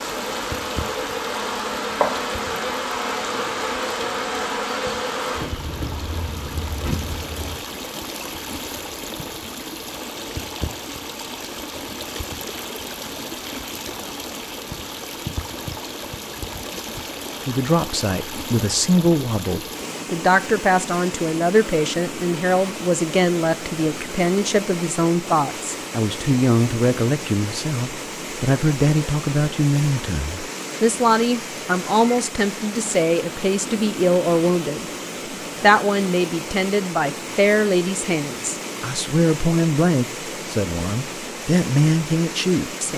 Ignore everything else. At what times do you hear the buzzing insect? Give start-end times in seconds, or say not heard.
0.0-7.5.